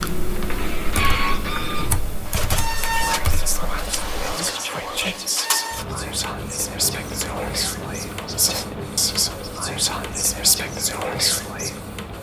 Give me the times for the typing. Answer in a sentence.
You can hear the typing from 0.0 to 4.4 s.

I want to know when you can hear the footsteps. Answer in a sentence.
You can't hear the footsteps here.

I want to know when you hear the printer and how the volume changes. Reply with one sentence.
The printer can be heard from 0.0 to 12.1 s, getting quieter.